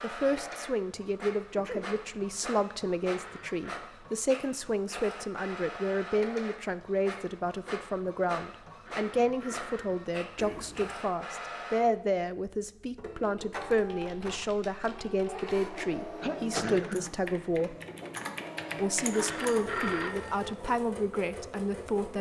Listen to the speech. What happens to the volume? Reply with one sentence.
The loudness of the speech stays about the same.